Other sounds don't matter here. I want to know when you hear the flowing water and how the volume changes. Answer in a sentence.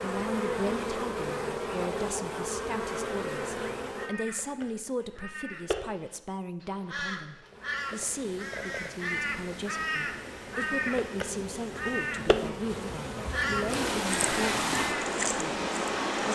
You can hear the flowing water from 7.9 to 16.2 s, getting louder.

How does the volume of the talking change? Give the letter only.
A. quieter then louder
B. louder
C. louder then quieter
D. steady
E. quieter
D.